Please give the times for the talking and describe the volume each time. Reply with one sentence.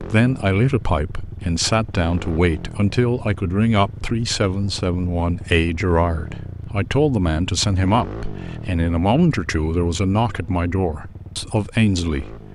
You can hear the talking from 0.0 to 12.5 s, at a steady volume.